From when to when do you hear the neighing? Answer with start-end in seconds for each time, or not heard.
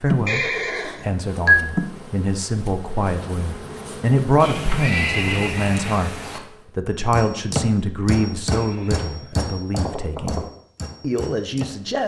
0.2-1.8, 4.4-6.4, 8.5-10.4.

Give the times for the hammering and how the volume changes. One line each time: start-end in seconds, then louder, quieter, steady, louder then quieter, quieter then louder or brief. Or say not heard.
7.1-11.8 quieter.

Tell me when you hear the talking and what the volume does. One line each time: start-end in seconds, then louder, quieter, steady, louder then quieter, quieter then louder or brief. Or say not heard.
0.0-12.0 louder then quieter.